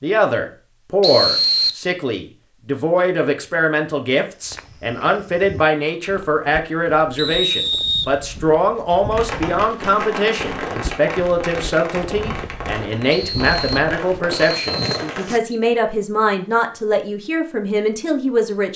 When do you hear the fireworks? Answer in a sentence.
The fireworks can be heard from 9.1 to 15.3 s.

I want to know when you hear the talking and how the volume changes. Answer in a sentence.
You can hear the talking from 0.0 to 18.7 s, at a steady volume.